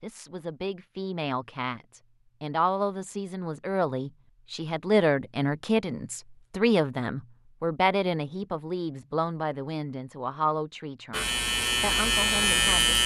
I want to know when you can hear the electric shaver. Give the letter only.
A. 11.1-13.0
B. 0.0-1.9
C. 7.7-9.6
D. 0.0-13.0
A.